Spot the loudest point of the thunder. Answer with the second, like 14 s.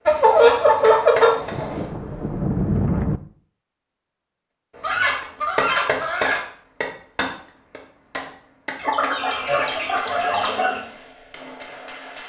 3 s.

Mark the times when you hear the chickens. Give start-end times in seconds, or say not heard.
0.1-1.9, 4.8-6.4, 8.8-10.8.